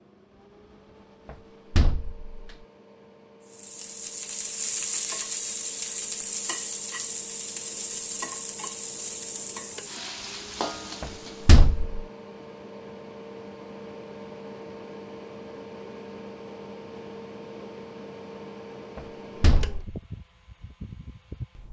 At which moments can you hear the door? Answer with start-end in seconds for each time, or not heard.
1.2-2.5, 11.0-11.9, 18.9-19.9.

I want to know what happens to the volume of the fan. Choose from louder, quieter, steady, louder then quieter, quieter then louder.
louder.